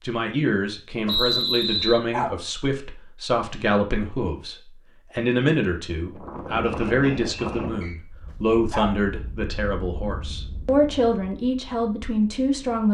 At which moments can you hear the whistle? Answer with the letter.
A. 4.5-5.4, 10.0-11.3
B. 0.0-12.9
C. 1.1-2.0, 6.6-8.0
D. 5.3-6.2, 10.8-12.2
C.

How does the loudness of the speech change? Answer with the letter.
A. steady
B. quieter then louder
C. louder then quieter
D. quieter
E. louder
A.